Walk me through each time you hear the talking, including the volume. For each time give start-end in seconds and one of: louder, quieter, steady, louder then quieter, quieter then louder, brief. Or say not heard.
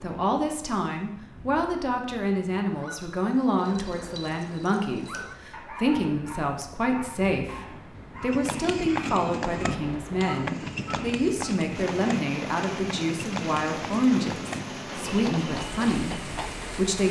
0.0-17.0 steady.